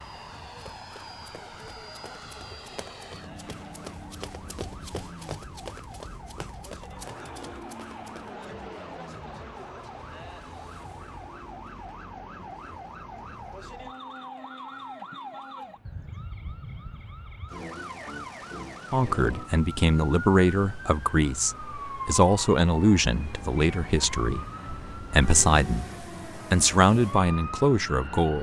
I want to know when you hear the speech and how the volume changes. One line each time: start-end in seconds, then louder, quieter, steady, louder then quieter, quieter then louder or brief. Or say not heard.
18.9-28.3 steady.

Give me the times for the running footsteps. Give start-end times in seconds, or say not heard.
0.5-8.4.